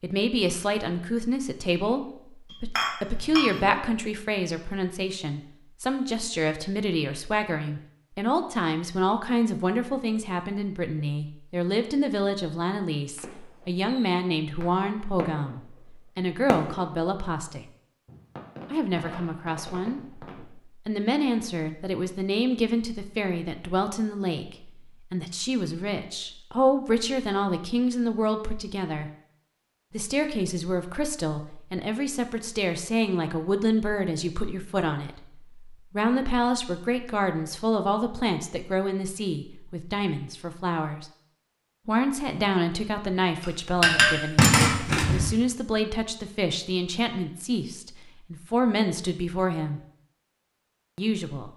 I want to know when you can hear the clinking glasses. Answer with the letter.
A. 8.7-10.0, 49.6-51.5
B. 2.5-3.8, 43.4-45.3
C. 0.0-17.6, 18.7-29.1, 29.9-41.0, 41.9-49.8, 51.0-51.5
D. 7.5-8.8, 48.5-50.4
B.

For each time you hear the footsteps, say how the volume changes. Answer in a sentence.
You can't hear the footsteps here.